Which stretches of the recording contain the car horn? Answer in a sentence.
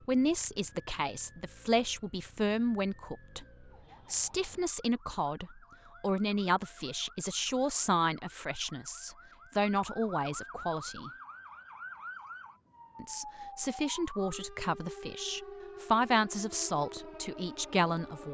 You can't hear the car horn here.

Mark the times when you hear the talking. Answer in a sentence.
The talking can be heard from 0.1 to 3.5 s, from 4.1 to 11.1 s and from 13.0 to 18.2 s.